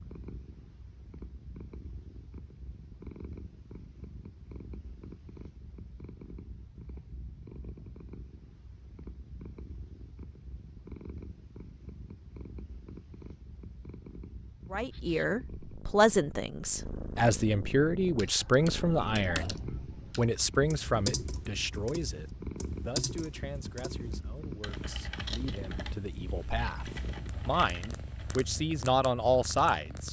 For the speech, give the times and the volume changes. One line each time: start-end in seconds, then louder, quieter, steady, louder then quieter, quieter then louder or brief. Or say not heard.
14.7-30.0 quieter then louder.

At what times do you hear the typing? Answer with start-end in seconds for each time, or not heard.
18.0-28.4.